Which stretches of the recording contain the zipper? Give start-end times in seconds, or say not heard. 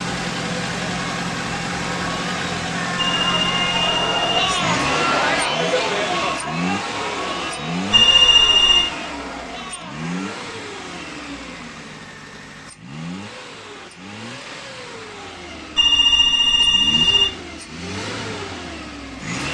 not heard.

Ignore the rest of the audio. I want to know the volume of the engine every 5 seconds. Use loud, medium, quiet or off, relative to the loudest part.
loud, loud, medium, medium.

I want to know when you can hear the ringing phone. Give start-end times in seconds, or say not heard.
3.0-4.5, 7.9-8.9, 15.8-17.3.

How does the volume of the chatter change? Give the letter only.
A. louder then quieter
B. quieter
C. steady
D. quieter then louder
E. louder
A.